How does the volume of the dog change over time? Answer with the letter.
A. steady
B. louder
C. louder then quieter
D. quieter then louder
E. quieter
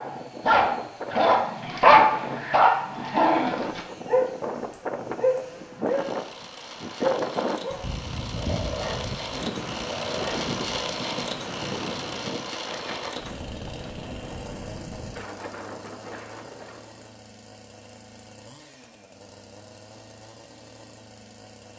E.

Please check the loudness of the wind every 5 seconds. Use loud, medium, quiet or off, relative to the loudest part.
loud, loud, loud, medium, off.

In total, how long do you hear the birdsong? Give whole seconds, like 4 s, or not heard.
not heard.